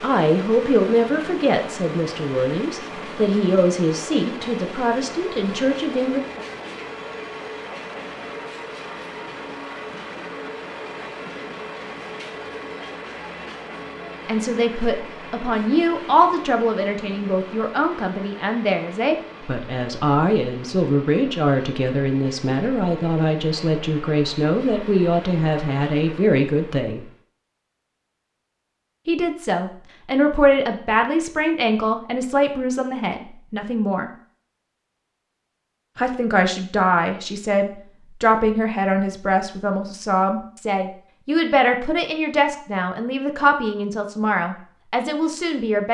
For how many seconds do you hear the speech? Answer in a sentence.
You can hear the speech for 34 seconds altogether.